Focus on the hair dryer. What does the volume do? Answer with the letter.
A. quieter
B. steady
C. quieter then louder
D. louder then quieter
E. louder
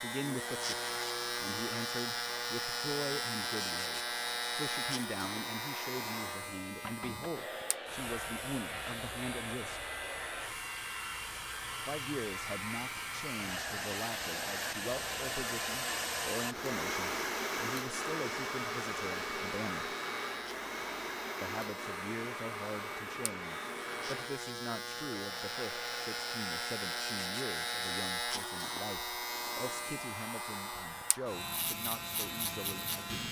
D.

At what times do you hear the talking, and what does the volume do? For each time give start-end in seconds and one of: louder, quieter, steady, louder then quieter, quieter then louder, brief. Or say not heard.
0.0-9.8 steady
11.8-19.9 steady
21.4-33.0 steady.